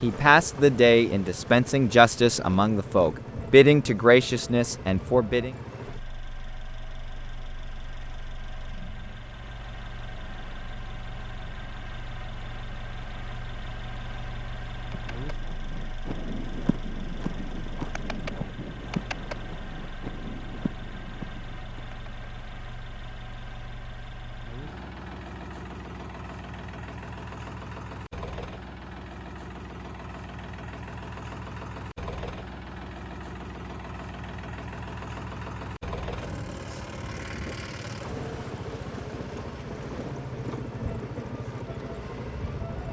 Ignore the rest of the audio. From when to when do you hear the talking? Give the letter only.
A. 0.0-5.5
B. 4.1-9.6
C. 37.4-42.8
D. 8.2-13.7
A.